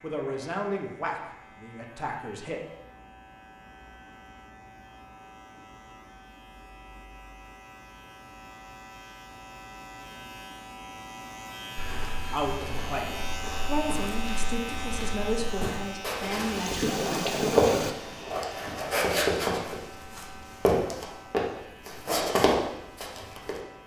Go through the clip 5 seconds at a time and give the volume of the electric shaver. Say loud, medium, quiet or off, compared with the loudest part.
quiet, medium, loud, loud, medium.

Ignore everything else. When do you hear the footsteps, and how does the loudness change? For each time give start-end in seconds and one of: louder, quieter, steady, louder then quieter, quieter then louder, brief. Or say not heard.
11.8-23.6 louder.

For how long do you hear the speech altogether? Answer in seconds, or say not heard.
8 s.